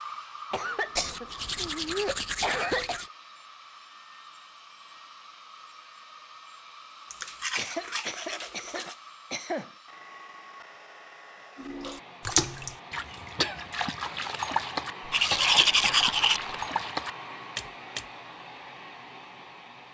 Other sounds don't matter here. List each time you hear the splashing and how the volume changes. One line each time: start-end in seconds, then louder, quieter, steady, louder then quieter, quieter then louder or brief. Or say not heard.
11.6-18.1 quieter then louder.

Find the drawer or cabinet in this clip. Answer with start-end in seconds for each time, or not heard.
not heard.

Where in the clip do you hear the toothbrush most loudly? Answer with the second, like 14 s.
16 s.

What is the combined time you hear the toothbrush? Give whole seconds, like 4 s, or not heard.
5 s.